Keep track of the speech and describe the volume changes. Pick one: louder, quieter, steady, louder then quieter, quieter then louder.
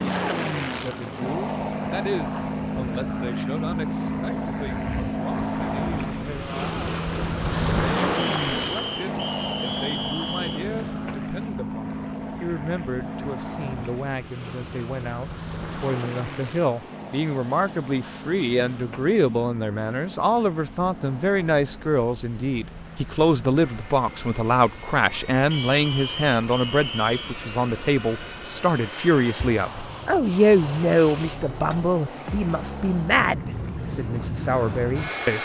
louder.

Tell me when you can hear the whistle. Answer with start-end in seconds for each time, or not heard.
8.2-10.7, 25.5-27.4.